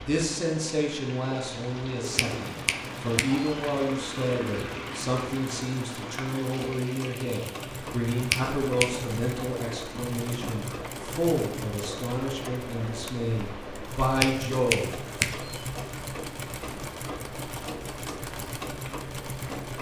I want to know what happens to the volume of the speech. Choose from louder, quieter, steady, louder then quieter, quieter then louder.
steady.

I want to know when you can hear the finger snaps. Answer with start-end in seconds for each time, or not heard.
2.1-3.5, 8.3-8.9, 14.2-15.7.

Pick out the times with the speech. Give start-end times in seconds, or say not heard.
0.0-15.1.